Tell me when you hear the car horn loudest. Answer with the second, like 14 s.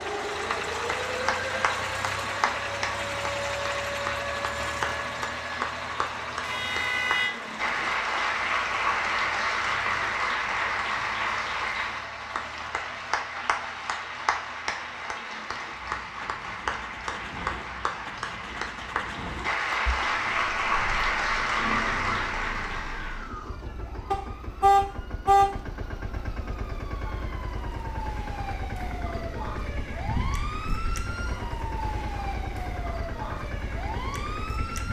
25 s.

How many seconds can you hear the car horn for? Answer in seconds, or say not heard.
2 s.